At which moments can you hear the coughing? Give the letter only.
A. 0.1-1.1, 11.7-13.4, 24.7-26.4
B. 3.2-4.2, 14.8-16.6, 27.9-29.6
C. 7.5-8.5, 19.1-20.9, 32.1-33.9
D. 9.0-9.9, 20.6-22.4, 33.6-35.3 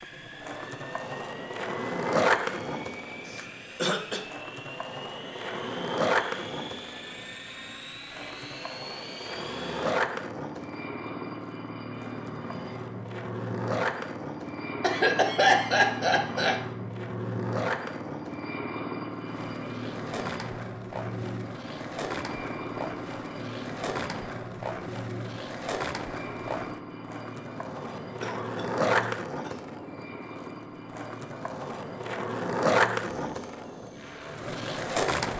B.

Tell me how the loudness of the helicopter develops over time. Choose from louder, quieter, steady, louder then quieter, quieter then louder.
louder then quieter.